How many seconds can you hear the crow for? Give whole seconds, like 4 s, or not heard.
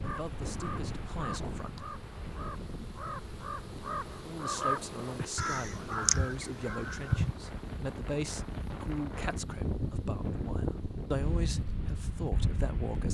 7 s.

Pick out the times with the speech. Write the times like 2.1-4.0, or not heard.
0.0-1.8, 4.2-13.0.